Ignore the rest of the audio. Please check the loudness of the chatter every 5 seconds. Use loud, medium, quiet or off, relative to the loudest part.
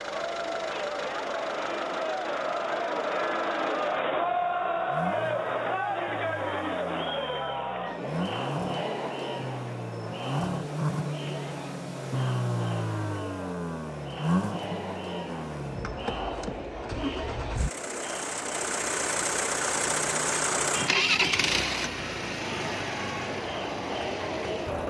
loud, loud, medium, medium, medium.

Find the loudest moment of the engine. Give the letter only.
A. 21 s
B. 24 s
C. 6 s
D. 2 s
A.